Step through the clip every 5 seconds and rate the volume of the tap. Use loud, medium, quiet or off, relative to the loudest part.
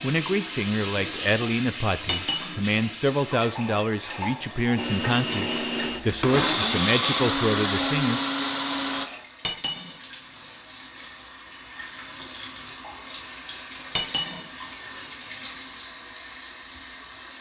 loud, medium, loud, loud.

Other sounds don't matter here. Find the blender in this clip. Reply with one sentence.
The blender can be heard from 4.8 to 9.1 s.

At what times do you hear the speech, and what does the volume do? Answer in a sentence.
The speech can be heard from 0.0 to 8.2 s, at a steady volume.